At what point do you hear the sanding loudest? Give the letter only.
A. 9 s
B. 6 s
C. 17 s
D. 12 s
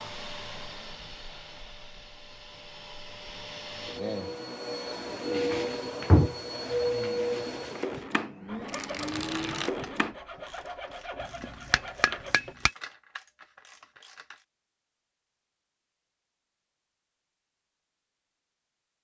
B.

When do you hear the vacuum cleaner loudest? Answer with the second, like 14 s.
7 s.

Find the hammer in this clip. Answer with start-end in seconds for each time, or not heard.
11.2-12.7.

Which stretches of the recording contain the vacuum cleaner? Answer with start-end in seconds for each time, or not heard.
0.0-10.2.